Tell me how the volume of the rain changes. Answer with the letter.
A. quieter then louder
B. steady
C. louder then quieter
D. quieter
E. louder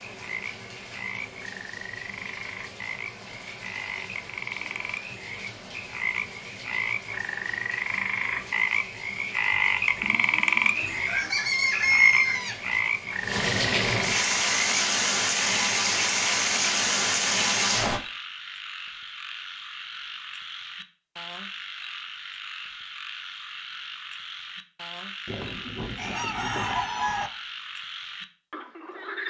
E.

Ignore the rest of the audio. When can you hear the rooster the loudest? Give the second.
12 s.